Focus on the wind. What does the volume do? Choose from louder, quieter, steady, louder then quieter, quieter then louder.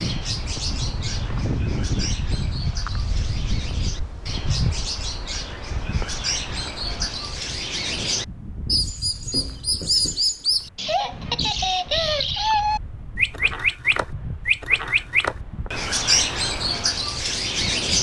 quieter.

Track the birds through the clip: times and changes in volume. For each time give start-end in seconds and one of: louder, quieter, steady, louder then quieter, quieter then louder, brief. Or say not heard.
0.0-17.9 louder.